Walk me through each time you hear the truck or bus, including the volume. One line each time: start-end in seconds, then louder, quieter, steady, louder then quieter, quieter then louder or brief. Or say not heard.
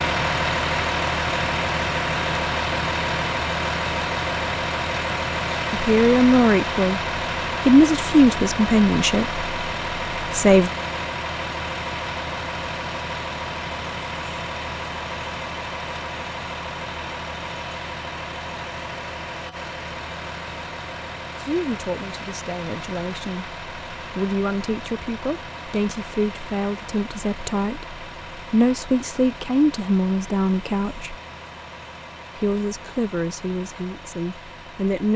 0.0-35.1 quieter.